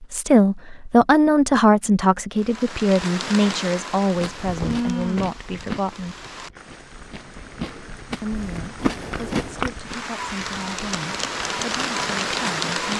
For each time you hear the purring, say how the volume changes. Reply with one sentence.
The purring can't be heard in this clip.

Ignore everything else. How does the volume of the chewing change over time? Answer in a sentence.
The volume of the chewing goes down, then up.